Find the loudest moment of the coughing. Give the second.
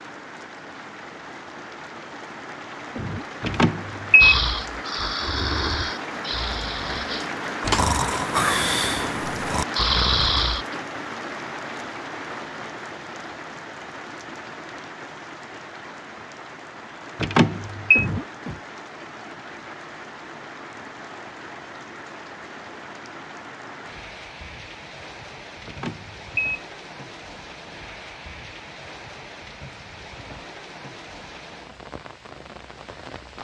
18 s.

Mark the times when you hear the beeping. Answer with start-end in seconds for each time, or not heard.
3.4-4.3, 17.2-18.1, 25.6-26.6.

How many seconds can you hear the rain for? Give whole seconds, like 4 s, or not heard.
33 s.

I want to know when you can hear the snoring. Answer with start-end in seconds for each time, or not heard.
4.2-10.7.